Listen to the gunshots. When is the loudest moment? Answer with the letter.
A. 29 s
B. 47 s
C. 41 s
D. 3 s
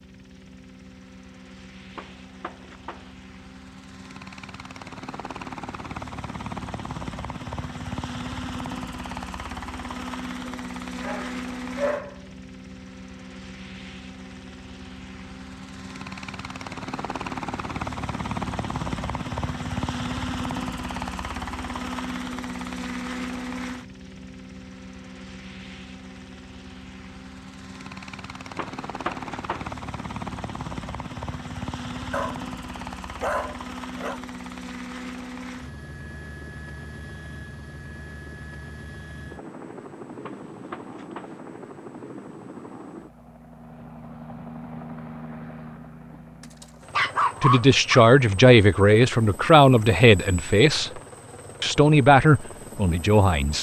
A.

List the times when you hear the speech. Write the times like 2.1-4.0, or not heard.
47.4-50.9, 51.6-53.5.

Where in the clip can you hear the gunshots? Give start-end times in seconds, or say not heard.
1.9-3.1, 28.6-29.8, 40.2-41.4.